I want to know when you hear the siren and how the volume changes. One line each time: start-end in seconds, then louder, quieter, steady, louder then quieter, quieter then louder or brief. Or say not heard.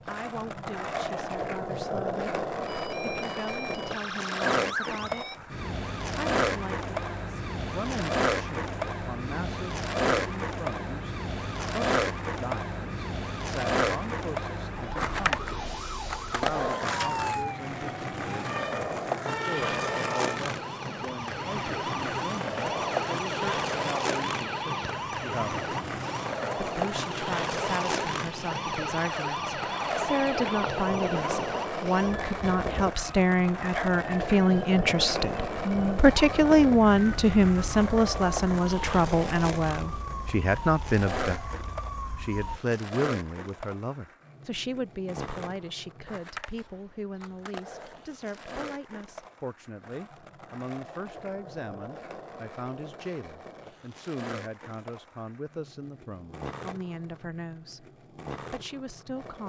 2.6-42.6 steady.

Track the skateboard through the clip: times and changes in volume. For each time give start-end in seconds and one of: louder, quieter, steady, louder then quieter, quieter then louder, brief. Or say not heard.
0.0-59.4 quieter.